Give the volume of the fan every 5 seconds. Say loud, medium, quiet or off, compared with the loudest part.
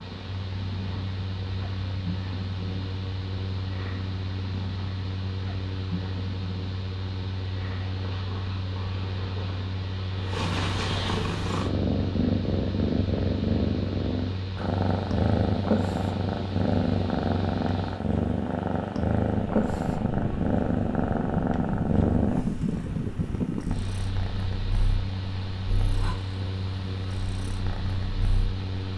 medium, medium, medium, medium, loud, medium.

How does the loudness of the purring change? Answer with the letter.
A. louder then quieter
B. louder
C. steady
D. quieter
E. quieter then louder
A.